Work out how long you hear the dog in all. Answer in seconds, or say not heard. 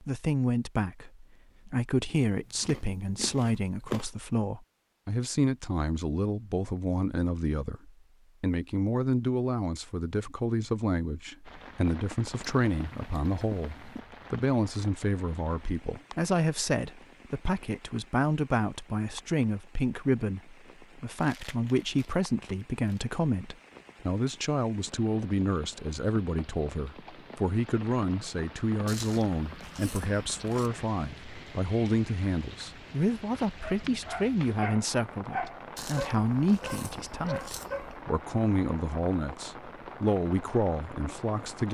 4 s.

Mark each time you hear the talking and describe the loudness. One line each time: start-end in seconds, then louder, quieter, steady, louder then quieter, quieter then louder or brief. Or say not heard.
0.0-41.6 steady.